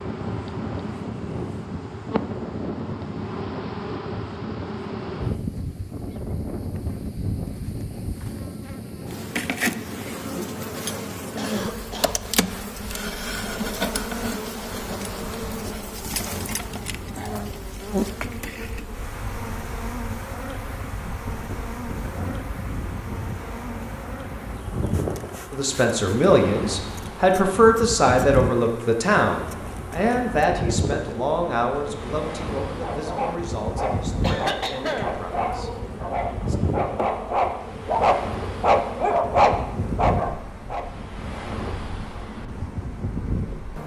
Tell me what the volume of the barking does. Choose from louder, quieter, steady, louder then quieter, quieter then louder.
louder.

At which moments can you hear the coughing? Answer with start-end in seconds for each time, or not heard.
11.3-12.2, 34.2-35.2.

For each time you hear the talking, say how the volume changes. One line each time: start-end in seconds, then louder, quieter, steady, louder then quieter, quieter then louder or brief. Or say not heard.
25.5-35.7 quieter.